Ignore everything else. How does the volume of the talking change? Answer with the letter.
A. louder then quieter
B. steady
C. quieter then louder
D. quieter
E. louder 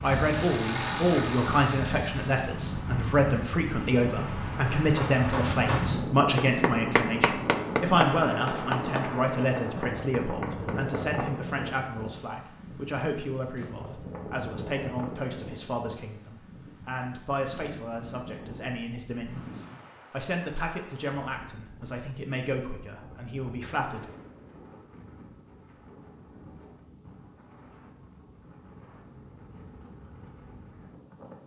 D.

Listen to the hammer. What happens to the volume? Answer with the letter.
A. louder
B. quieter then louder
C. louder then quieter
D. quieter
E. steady
D.